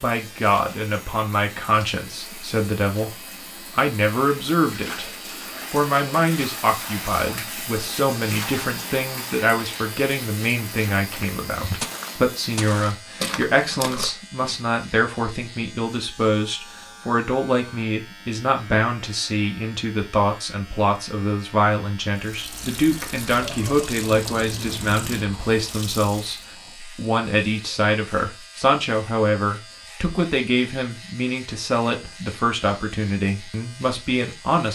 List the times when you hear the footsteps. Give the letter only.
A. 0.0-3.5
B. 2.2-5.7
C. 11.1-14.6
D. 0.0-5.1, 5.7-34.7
C.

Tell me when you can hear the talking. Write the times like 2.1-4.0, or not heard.
0.0-5.1, 5.7-34.7.